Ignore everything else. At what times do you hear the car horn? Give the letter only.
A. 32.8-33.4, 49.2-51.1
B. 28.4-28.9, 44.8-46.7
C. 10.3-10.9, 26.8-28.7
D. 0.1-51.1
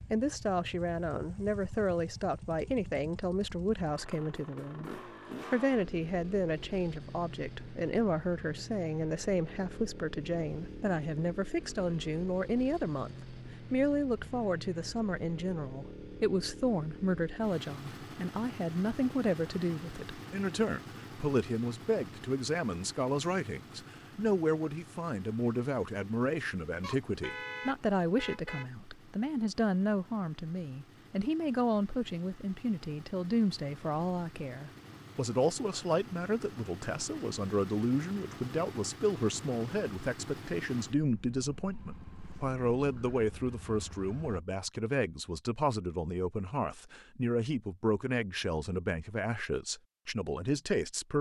C.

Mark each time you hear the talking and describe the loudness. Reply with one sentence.
The talking can be heard from 0.1 to 51.1 s, at a steady volume.